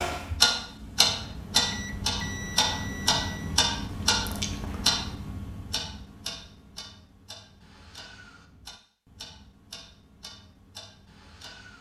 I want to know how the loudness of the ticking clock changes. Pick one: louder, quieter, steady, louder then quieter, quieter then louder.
quieter.